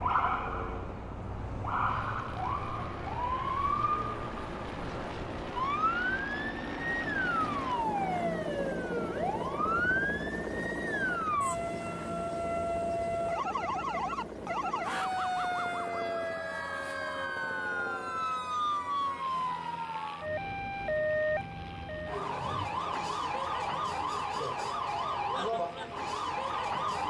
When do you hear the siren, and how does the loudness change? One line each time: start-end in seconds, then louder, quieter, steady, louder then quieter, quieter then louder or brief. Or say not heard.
0.0-27.0 steady.